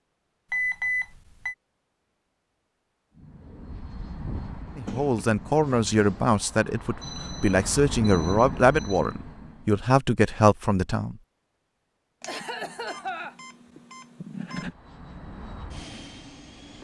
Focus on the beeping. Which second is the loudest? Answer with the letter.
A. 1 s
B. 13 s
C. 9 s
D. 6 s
A.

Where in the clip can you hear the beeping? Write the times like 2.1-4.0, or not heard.
0.5-1.6, 7.0-9.2, 12.2-14.7.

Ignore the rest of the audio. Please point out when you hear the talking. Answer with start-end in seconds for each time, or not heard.
4.8-11.2.